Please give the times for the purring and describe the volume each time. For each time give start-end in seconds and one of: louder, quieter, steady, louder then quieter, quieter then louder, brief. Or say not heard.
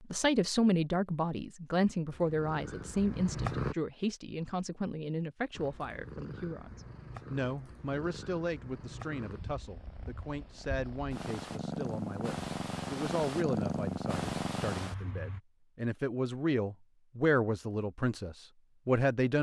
2.0-3.8 brief
5.5-15.4 louder.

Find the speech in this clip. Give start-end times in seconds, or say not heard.
0.0-19.3.